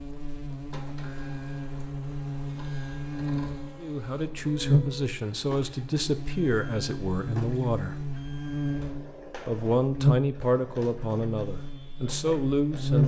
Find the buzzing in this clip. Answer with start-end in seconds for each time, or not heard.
0.0-13.0.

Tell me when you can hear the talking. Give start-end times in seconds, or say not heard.
3.8-8.0, 9.4-13.0.